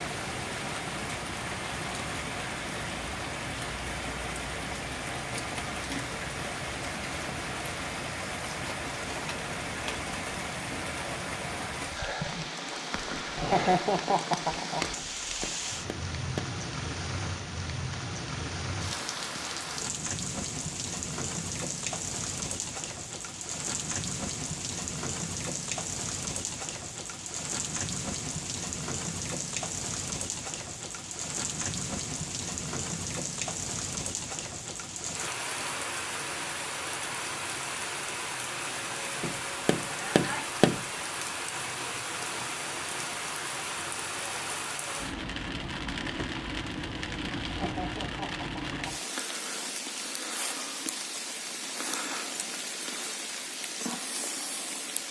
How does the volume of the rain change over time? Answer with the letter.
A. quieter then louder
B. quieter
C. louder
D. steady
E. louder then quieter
D.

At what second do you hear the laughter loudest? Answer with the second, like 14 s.
14 s.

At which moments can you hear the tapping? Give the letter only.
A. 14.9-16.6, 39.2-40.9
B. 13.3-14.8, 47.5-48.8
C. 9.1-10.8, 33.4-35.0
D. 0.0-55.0
A.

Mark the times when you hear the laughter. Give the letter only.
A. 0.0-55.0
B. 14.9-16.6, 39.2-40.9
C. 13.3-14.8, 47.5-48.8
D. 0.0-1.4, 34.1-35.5
C.